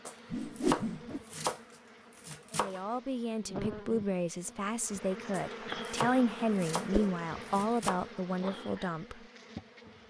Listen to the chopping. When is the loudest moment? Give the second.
1 s.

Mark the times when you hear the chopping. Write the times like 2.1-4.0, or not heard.
0.1-2.8, 5.3-8.1.